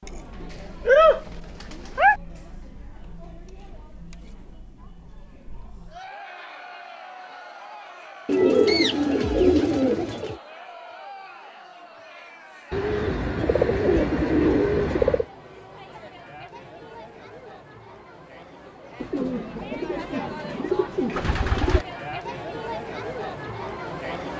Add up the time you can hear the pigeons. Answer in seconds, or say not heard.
9 s.